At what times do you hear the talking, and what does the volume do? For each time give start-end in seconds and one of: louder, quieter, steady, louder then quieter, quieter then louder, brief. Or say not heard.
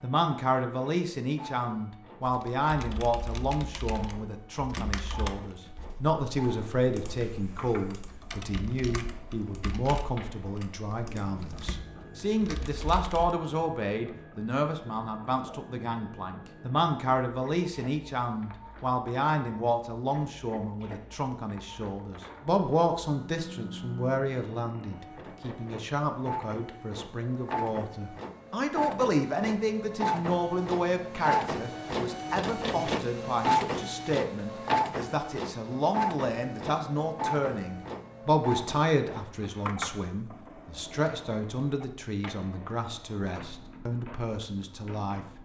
0.0-45.2 steady.